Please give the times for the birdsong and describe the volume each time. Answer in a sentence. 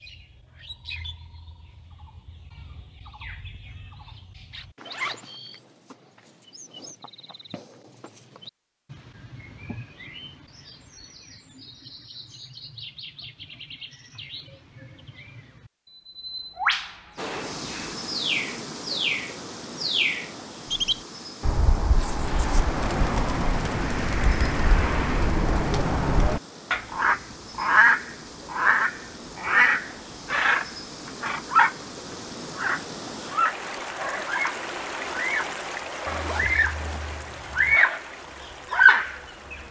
You can hear the birdsong from 0.0 to 36.9 s, getting louder; briefly from 37.5 to 38.0 s; and briefly from 38.7 to 39.5 s.